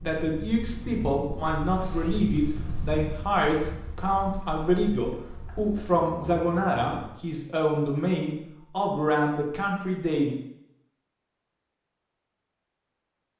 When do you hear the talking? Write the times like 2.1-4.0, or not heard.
0.1-10.3.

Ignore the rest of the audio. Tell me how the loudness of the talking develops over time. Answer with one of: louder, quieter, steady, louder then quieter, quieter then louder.
steady.